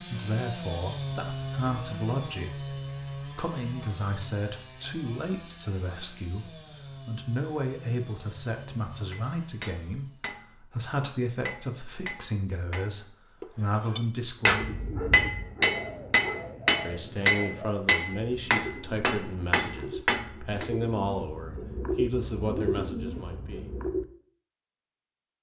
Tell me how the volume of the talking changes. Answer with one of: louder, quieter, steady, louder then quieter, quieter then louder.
steady.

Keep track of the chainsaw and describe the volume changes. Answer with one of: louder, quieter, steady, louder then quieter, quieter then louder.
quieter.